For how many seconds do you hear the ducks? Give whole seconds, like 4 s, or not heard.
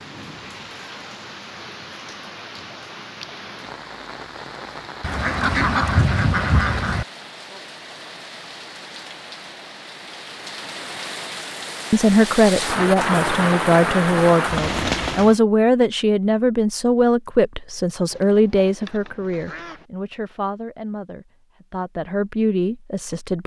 4 s.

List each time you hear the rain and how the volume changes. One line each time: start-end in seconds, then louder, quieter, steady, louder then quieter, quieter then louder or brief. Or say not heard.
0.0-15.4 louder.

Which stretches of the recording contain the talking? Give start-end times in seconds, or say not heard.
11.9-23.4.